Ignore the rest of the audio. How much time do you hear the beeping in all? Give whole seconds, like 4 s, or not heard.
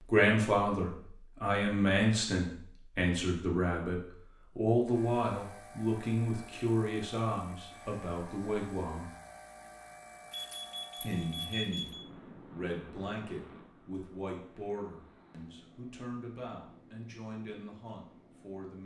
2 s.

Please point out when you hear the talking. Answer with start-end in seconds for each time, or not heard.
0.1-9.1, 11.0-11.9, 12.5-18.8.